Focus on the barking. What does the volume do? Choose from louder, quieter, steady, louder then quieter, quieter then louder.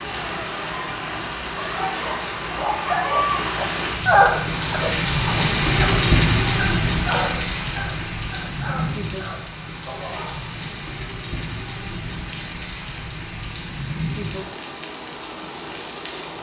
louder then quieter.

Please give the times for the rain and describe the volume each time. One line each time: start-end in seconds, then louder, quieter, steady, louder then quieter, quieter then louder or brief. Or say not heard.
0.0-16.3 louder then quieter.